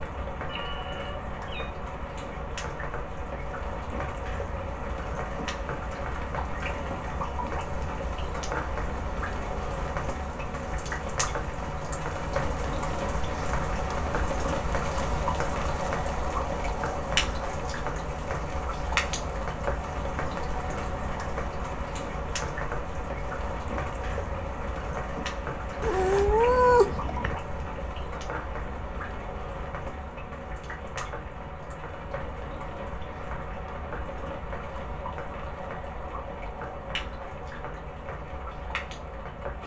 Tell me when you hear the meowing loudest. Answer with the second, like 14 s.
27 s.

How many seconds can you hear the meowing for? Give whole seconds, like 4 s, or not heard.
3 s.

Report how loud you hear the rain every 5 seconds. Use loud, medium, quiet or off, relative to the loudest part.
medium, loud, loud, loud, loud, medium, medium, medium.